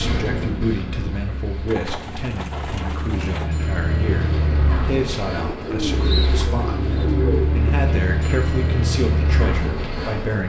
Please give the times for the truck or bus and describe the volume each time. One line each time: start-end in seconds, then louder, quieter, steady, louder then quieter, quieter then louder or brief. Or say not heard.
0.0-10.4 louder.